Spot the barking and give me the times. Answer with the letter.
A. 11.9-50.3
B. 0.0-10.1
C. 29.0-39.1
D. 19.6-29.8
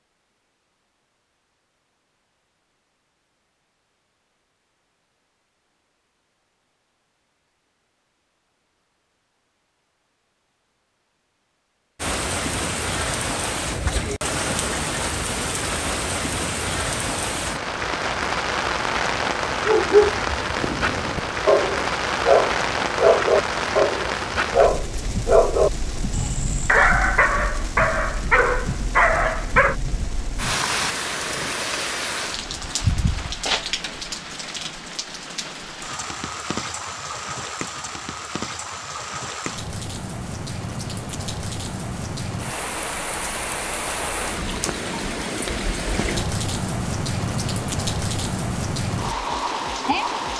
D.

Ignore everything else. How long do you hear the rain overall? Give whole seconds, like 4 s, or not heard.
38 s.